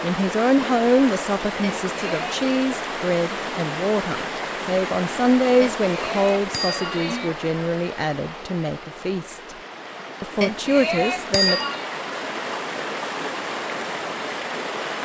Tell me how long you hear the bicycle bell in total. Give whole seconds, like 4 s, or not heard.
4 s.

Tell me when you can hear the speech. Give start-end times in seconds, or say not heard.
0.0-9.3, 10.2-11.6.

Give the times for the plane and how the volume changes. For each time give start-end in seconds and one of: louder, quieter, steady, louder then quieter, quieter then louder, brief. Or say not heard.
not heard.